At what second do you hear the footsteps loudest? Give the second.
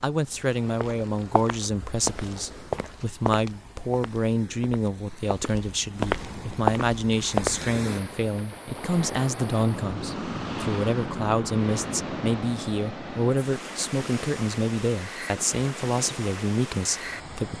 7 s.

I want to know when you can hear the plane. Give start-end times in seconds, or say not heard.
9.7-12.6.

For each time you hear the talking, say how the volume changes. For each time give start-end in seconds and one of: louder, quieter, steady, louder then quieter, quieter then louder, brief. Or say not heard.
0.0-17.5 steady.